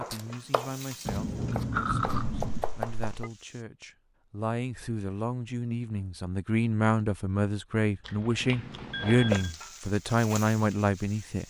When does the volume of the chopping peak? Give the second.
3 s.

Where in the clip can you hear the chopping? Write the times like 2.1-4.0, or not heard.
0.0-3.2.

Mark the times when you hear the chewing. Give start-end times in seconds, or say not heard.
1.1-2.6, 8.1-9.4.